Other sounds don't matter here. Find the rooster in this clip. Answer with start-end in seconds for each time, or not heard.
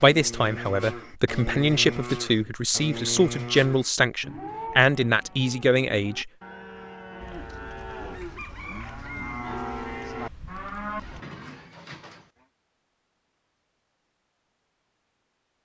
7.2-11.2.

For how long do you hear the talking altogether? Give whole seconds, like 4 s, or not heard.
6 s.